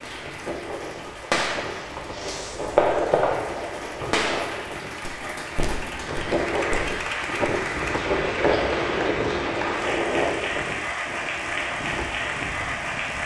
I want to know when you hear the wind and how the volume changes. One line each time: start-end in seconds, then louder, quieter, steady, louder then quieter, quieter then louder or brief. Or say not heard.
0.0-13.2 louder then quieter.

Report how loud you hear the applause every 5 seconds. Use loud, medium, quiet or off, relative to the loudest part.
medium, loud, loud.